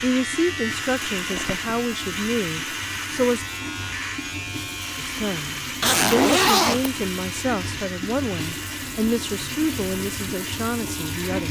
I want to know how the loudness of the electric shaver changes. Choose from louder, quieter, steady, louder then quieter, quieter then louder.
quieter.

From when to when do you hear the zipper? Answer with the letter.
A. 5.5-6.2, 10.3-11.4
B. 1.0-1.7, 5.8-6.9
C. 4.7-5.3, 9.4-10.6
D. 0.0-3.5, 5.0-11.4
B.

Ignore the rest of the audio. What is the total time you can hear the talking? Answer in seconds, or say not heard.
10 s.